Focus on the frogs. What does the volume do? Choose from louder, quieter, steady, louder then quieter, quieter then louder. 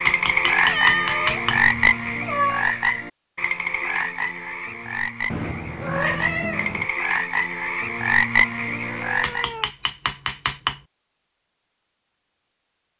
quieter then louder.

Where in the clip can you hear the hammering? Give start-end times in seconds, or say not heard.
0.1-1.6, 9.2-10.8.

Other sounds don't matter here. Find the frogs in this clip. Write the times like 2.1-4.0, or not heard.
0.0-9.5.